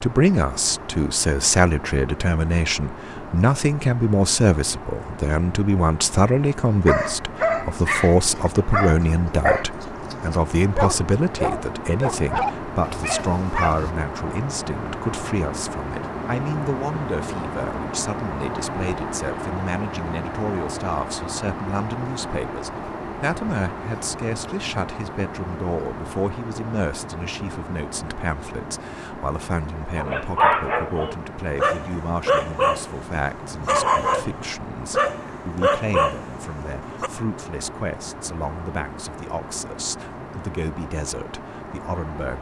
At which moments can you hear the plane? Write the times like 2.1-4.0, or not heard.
0.0-42.3.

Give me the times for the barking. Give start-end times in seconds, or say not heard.
6.8-13.9, 29.9-37.1.